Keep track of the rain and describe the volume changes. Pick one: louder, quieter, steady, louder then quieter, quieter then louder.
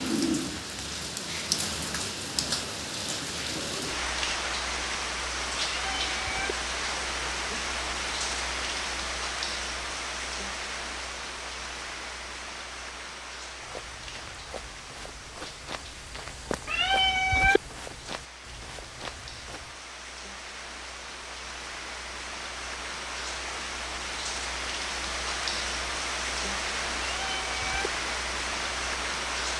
quieter then louder.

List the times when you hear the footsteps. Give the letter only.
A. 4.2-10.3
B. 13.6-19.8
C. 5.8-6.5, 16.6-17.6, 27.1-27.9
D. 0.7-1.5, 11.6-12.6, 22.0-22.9
B.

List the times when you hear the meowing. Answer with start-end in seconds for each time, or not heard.
5.8-6.5, 16.6-17.6, 27.1-27.9.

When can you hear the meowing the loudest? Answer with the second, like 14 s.
17 s.